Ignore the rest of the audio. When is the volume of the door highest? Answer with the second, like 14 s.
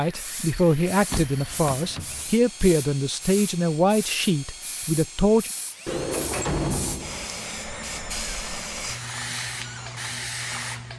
7 s.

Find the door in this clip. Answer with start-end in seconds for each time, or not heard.
1.1-2.3, 5.8-7.3.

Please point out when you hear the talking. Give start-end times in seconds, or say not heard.
0.0-5.5.